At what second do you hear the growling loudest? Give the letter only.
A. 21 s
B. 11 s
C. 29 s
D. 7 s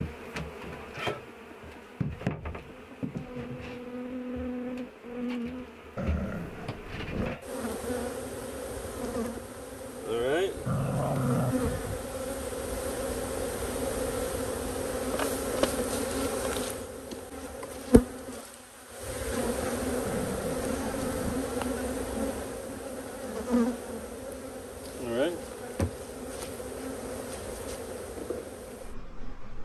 B.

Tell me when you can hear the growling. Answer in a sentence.
The growling can be heard from 6.0 to 7.4 s, from 10.7 to 12.1 s and from 20.1 to 21.4 s.